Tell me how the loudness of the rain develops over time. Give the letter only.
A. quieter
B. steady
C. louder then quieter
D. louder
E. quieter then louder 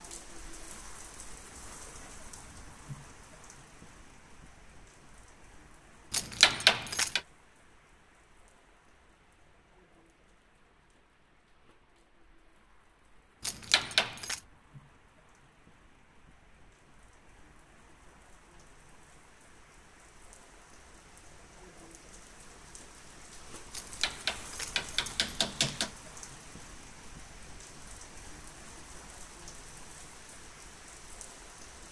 E.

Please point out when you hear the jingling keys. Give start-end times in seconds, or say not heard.
6.1-7.2, 13.4-14.4, 23.7-25.9.